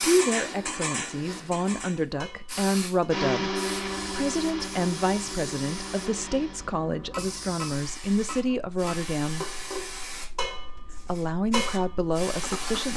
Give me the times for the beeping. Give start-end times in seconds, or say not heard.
not heard.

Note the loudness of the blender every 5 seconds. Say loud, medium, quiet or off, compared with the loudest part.
loud, medium, off.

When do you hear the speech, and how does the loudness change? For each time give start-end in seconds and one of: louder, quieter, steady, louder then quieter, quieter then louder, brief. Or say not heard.
0.0-9.4 steady
11.0-12.9 brief.